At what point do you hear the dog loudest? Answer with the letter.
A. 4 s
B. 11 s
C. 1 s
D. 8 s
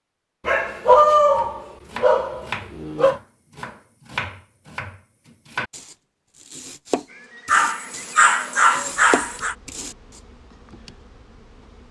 C.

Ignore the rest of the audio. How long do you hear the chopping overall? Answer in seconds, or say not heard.
9 s.